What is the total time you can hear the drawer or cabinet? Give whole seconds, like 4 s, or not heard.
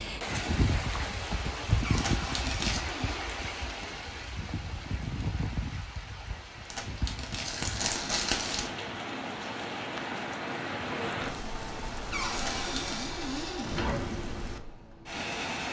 3 s.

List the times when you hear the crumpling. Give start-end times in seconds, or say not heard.
1.9-2.9, 6.7-8.7, 12.3-13.0.